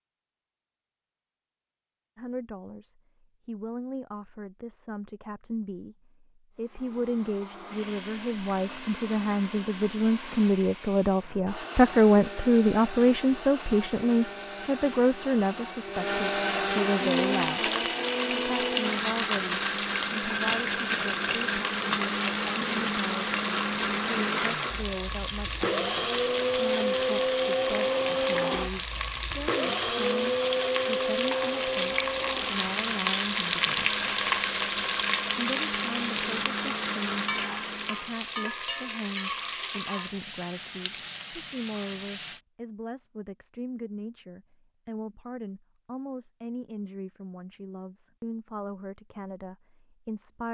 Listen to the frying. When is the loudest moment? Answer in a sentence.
The loudest moment of the frying is at 34 seconds.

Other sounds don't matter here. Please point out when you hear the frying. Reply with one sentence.
You can hear the frying from 16.9 to 42.4 s.